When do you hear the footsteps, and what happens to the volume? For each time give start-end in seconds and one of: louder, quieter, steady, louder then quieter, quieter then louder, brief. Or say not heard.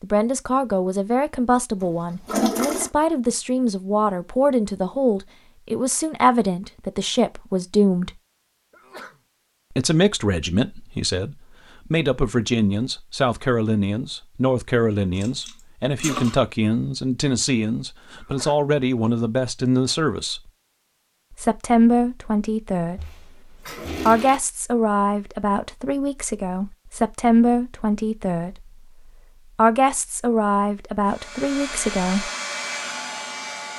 not heard.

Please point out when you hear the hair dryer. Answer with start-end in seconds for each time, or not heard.
31.1-33.7.